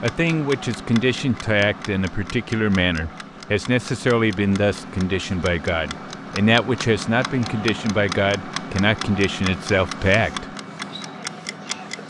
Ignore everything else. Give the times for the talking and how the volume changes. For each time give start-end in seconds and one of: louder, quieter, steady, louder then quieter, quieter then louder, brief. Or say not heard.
0.0-10.4 steady.